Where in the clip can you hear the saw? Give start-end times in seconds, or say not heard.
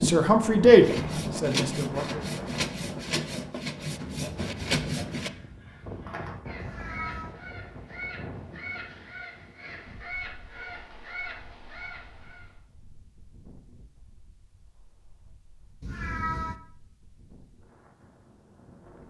0.0-5.3.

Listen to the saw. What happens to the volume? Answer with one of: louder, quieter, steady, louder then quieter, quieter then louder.
steady.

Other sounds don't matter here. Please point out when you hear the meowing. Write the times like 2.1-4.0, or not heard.
6.5-7.3, 15.8-16.6.